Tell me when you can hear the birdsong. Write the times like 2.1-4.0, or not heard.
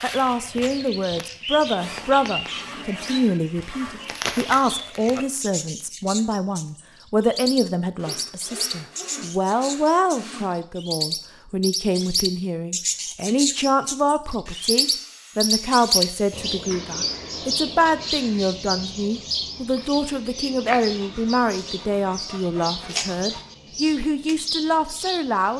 0.0-25.5.